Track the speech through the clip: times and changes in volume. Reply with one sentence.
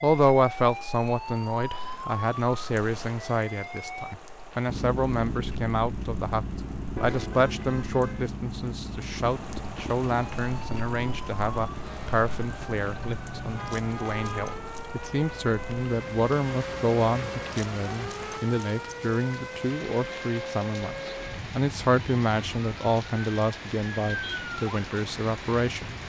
The speech can be heard from 0.0 to 25.9 s, at a steady volume.